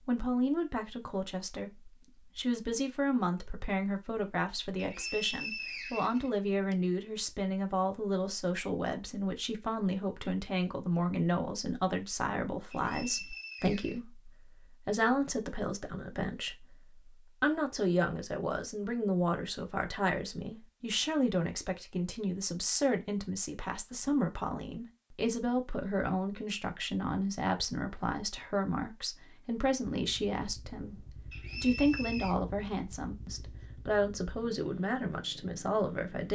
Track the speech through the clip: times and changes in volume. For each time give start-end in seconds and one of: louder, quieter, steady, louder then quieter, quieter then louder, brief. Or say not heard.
0.1-36.2 steady.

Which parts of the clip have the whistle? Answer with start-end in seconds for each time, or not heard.
4.8-6.8, 12.7-14.0, 31.3-32.4.